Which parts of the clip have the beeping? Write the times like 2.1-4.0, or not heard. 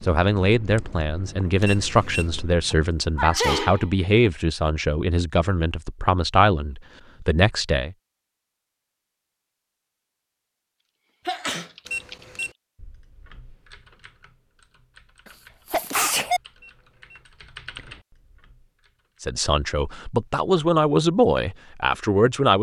1.6-2.3, 11.8-12.6, 16.6-17.2.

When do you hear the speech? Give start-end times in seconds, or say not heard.
0.0-8.0, 19.2-22.5.